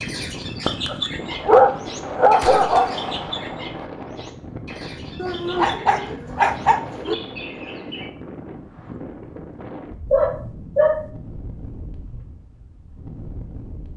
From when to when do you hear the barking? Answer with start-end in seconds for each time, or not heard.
0.7-2.9, 5.2-7.2, 10.1-11.1.